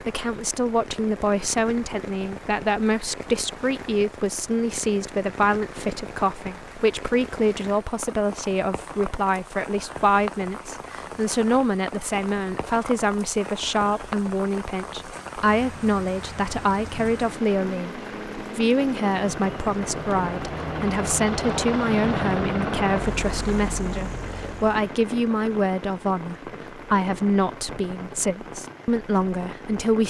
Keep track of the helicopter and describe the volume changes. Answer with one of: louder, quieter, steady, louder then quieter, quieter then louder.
louder then quieter.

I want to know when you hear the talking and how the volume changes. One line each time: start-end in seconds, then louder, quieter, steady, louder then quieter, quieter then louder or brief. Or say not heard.
0.0-30.0 steady.